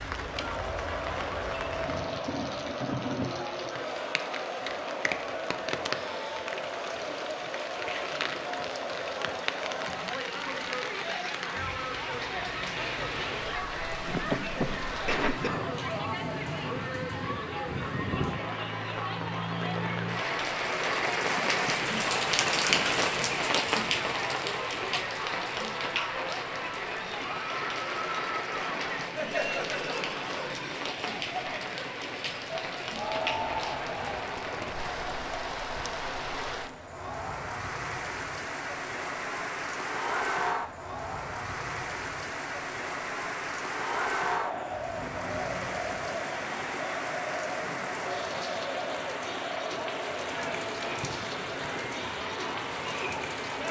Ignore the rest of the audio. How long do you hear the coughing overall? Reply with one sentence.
The coughing can be heard for 2 seconds in total.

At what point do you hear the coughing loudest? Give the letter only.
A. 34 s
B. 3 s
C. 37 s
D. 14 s
D.